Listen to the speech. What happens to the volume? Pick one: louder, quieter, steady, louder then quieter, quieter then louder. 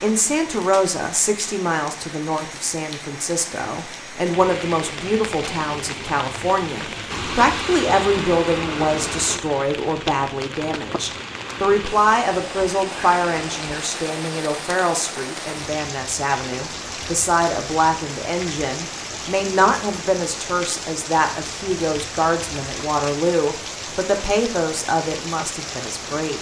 steady.